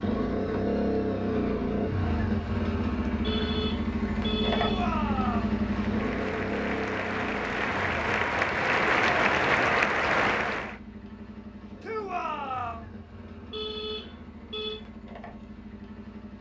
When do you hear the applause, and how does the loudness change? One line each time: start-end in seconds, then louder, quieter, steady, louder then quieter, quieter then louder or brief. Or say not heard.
5.5-10.8 louder.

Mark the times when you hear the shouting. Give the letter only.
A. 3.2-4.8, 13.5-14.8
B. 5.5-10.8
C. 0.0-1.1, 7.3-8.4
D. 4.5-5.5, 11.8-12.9
D.